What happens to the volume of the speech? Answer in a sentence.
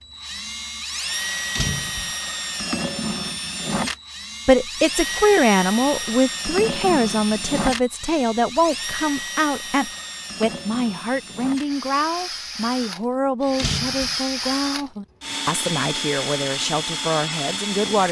The volume of the speech goes down.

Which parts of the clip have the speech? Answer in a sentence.
The speech can be heard from 4.5 to 18.0 s.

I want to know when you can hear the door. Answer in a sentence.
You can hear the door from 1.6 to 2.1 s and from 13.6 to 14.2 s.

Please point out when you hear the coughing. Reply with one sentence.
The coughing can't be heard in this clip.